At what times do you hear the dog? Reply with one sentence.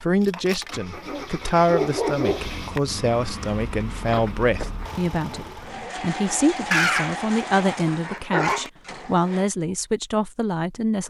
You can hear the dog from 0.9 to 2.5 s and from 6.7 to 8.7 s.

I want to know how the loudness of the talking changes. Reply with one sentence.
The loudness of the talking stays about the same.